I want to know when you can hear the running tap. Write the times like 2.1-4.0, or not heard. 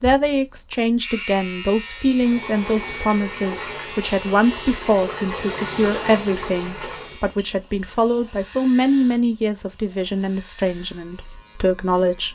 2.2-7.2.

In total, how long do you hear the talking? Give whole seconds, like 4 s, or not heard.
12 s.